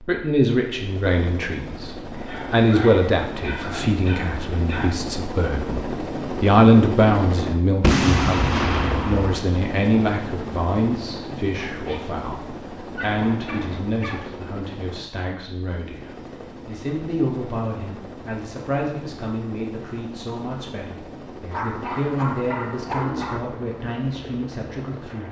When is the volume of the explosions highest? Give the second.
8 s.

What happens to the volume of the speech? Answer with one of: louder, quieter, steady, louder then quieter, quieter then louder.
quieter.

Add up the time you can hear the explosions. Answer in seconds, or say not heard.
2 s.